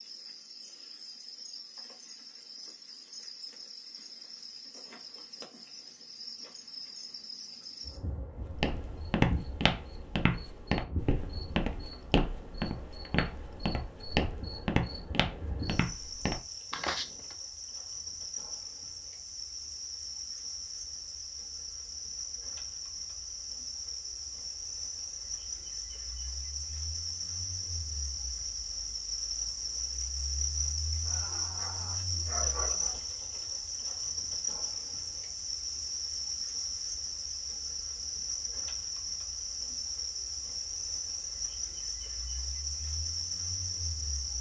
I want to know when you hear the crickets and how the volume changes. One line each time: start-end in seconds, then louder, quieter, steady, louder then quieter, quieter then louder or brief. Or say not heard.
0.0-44.3 louder.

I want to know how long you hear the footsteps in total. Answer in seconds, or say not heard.
9 s.